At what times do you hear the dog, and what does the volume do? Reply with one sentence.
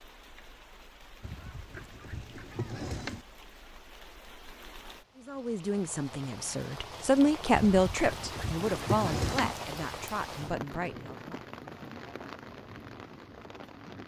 You can't hear the dog here.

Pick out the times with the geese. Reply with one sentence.
The geese can be heard from 1.2 to 3.2 s and from 7.5 to 9.6 s.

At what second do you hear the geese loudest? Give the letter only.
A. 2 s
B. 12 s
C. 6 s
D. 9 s
D.